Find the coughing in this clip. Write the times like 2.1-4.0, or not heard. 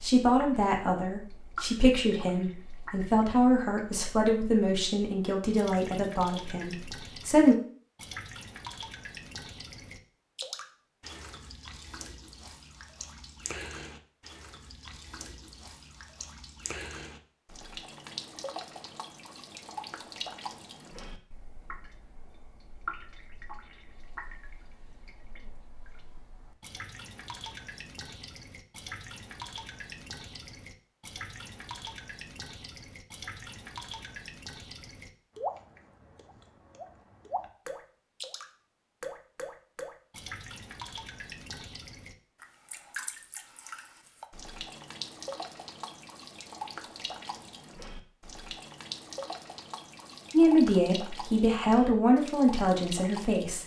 not heard.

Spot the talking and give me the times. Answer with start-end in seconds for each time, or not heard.
0.0-7.5, 50.3-53.6.